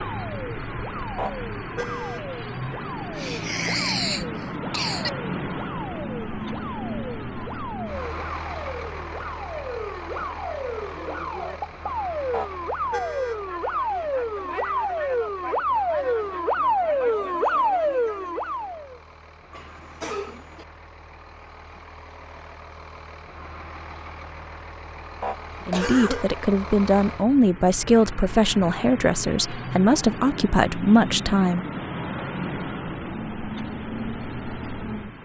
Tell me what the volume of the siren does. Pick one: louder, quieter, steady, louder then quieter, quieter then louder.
louder.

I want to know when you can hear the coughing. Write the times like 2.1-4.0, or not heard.
3.1-5.1, 19.5-20.6, 25.5-26.2.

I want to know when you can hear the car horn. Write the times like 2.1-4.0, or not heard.
1.1-2.2, 12.3-13.4, 25.2-26.3.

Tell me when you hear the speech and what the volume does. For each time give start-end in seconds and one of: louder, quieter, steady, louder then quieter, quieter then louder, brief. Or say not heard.
25.6-31.6 steady.